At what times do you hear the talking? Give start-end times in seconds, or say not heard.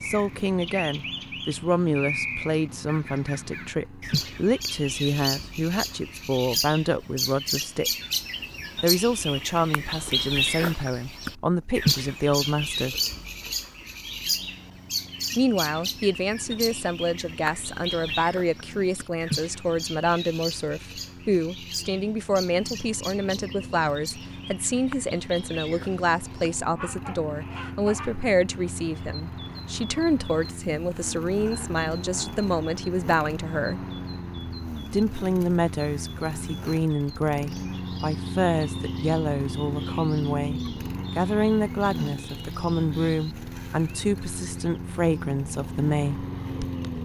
0.0-7.9, 8.8-12.9, 15.3-33.8, 34.9-46.2.